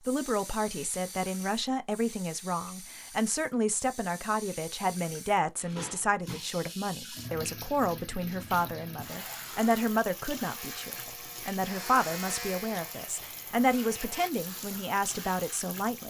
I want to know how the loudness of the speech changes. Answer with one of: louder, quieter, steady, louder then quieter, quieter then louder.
steady.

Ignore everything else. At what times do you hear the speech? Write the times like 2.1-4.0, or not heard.
0.0-16.0.